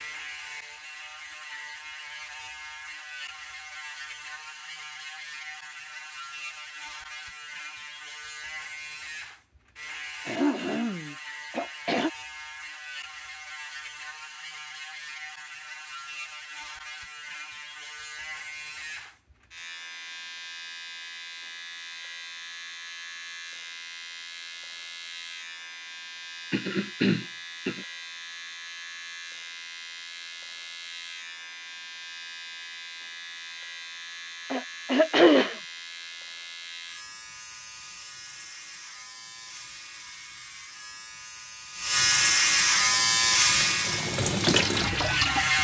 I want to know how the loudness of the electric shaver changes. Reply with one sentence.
The volume of the electric shaver goes up.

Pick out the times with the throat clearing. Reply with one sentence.
The throat clearing can be heard from 10.2 to 12.1 s, from 26.5 to 27.9 s and from 34.5 to 35.5 s.